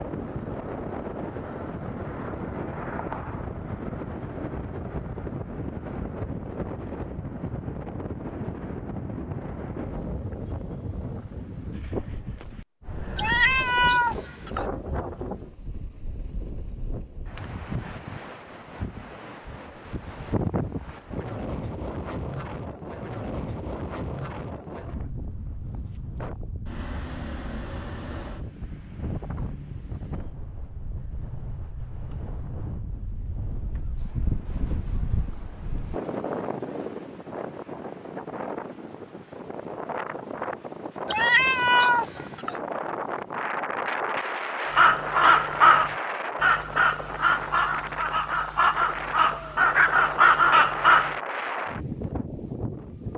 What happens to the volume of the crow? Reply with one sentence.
The volume of the crow goes down, then up.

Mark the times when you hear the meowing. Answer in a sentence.
You can hear the meowing from 13.2 to 14.7 s and from 41.0 to 42.5 s.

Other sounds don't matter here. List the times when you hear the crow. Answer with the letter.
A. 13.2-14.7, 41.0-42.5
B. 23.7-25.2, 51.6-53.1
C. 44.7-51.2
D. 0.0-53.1
C.